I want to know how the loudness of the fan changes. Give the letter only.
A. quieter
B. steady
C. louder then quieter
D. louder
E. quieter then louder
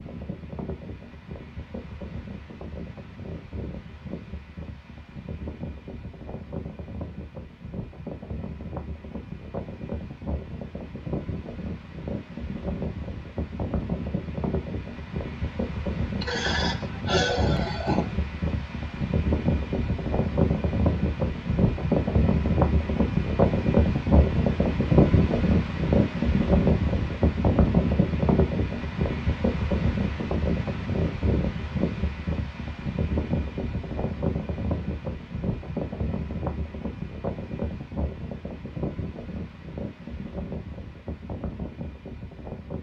C.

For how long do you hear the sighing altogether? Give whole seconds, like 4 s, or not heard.
2 s.